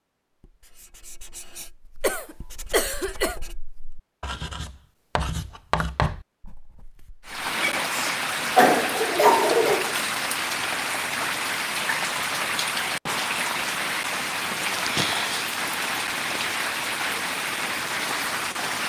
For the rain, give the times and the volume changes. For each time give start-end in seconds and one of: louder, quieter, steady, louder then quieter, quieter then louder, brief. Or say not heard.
7.2-18.8 steady.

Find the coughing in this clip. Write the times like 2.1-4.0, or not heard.
2.0-3.4, 7.7-9.9, 14.5-15.5.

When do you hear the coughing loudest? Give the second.
9 s.